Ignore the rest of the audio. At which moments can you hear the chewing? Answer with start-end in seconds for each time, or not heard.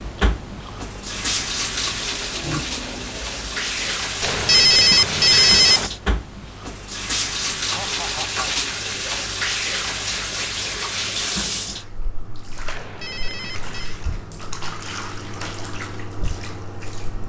0.0-4.0.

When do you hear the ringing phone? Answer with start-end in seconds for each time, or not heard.
4.2-5.9, 12.7-14.0.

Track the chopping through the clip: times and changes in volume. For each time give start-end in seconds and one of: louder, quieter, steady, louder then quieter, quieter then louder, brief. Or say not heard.
not heard.